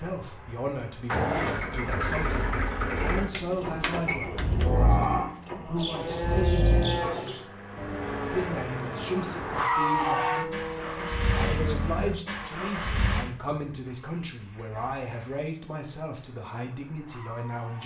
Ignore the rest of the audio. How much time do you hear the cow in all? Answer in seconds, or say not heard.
7 s.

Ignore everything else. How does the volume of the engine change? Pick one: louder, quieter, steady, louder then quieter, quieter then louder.
quieter.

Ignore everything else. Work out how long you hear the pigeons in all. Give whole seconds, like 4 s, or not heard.
2 s.